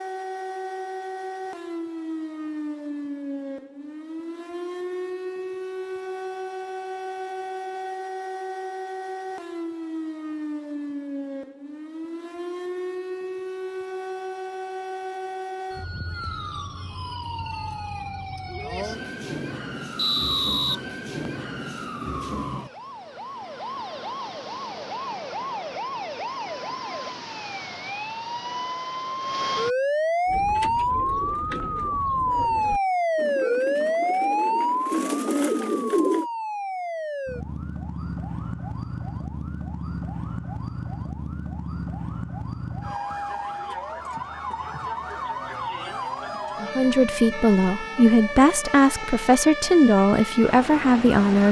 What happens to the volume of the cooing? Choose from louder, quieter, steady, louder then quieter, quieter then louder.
louder.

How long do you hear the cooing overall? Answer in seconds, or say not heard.
6 s.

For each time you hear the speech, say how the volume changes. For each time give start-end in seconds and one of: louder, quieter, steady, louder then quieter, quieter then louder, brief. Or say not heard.
46.6-51.4 steady.